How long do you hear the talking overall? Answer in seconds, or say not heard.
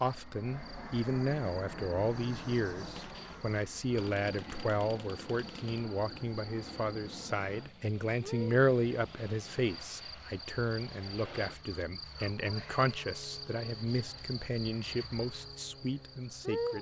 17 s.